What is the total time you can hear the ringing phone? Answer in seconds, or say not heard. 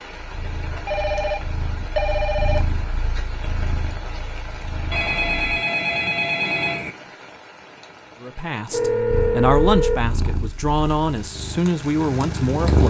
5 s.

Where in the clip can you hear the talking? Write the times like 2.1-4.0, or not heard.
8.2-12.8.